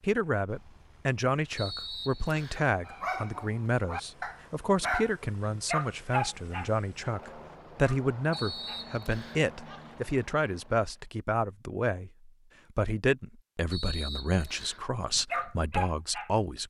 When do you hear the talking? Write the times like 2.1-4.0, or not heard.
0.0-16.6.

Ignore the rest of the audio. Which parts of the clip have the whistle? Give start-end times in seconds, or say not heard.
1.6-2.7, 8.3-9.4, 13.7-14.8.